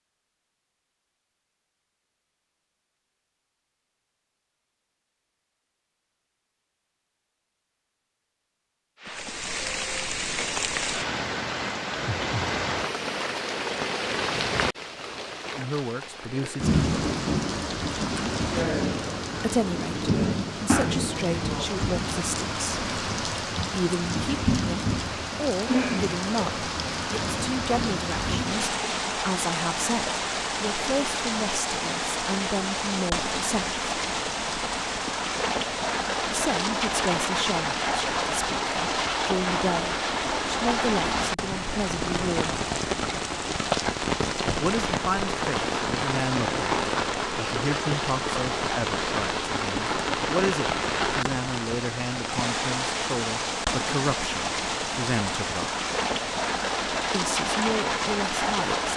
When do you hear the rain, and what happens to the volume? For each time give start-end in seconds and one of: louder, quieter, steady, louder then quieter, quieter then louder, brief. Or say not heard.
9.0-58.9 steady.